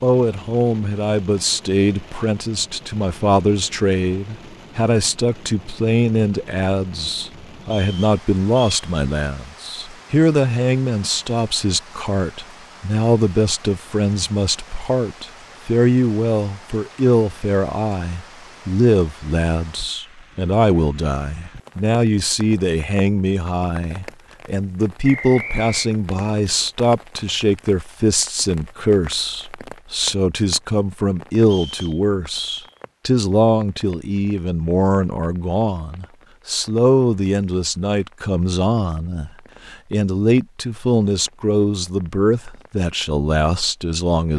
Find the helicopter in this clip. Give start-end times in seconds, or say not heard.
not heard.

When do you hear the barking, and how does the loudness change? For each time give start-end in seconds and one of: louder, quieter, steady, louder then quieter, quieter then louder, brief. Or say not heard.
not heard.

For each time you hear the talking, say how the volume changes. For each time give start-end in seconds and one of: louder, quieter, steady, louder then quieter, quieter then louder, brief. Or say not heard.
0.0-44.3 steady.